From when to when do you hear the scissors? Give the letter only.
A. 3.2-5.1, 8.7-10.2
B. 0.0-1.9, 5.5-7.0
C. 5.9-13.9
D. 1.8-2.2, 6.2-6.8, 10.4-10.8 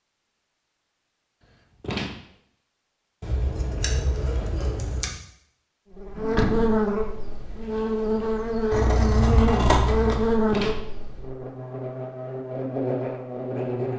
A.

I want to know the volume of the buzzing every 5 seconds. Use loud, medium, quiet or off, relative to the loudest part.
off, loud, loud.